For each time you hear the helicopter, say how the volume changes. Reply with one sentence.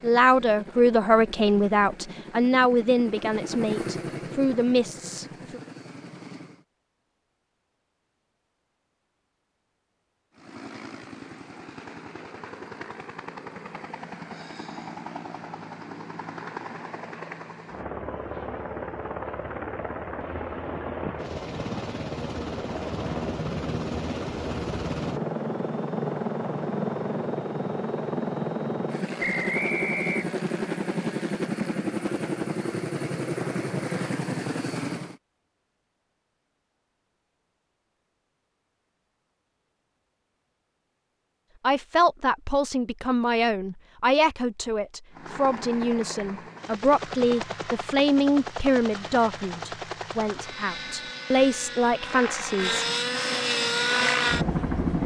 You can hear the helicopter from 0.0 to 6.7 s, getting louder then quieter; from 10.3 to 35.2 s, getting louder; and from 45.1 to 55.0 s, getting louder.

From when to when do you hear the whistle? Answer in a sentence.
You can hear the whistle from 29.2 to 30.3 s.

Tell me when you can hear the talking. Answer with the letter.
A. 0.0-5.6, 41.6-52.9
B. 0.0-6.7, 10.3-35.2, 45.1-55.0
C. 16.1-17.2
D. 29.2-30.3
A.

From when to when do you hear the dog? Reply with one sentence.
You can't hear the dog here.